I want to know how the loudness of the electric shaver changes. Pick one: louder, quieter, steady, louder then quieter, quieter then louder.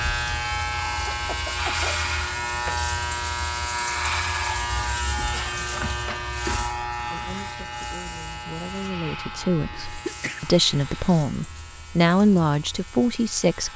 quieter.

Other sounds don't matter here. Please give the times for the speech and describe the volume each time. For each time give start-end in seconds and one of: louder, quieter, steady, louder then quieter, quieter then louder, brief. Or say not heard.
7.0-13.7 louder.